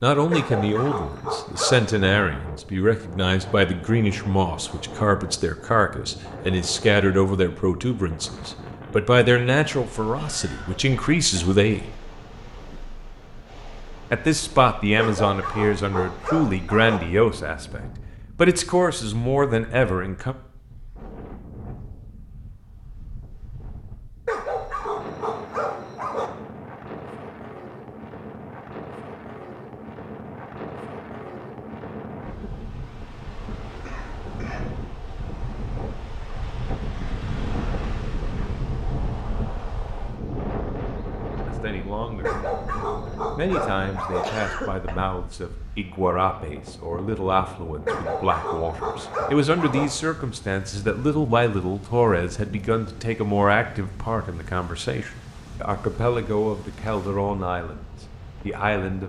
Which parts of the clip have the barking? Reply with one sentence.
The barking can be heard from 0.3 to 1.9 s, from 14.9 to 17.0 s, from 24.2 to 26.3 s, from 42.2 to 44.2 s and from 47.9 to 49.9 s.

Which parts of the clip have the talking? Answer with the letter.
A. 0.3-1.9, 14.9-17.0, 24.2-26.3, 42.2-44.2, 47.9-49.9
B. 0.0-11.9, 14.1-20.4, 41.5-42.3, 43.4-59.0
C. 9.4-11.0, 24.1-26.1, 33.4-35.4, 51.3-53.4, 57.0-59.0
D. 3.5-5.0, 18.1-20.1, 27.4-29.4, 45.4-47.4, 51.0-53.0
B.